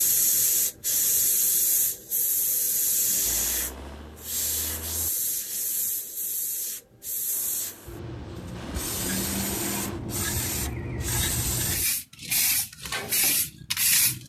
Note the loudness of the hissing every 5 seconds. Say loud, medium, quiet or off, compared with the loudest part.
loud, medium, loud.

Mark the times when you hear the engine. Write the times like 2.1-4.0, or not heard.
3.2-5.1, 7.3-10.2.